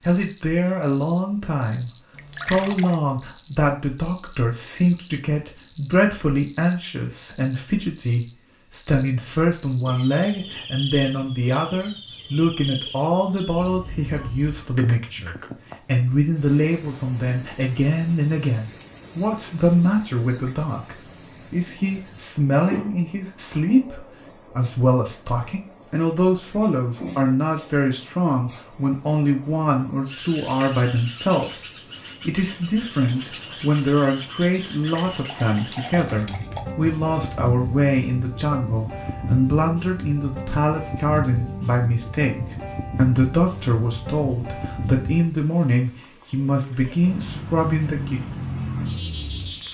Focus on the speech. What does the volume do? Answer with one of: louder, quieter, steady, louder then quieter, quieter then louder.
steady.